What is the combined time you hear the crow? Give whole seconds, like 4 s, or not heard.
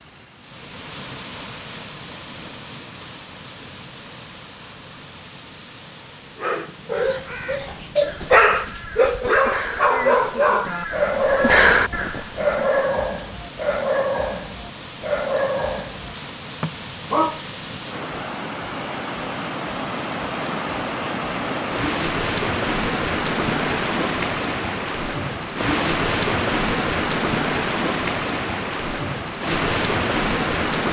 6 s.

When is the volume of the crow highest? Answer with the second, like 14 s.
12 s.